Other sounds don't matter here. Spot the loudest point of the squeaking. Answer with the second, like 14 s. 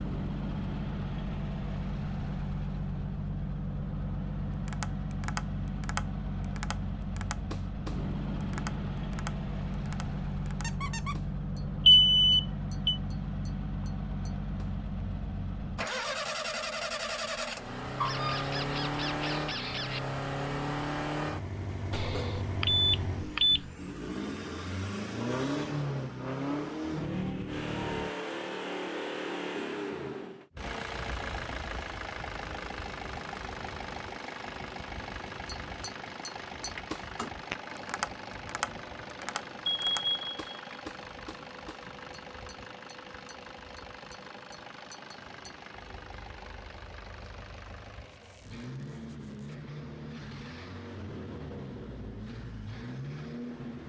18 s.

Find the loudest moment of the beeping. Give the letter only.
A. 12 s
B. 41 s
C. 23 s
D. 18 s
A.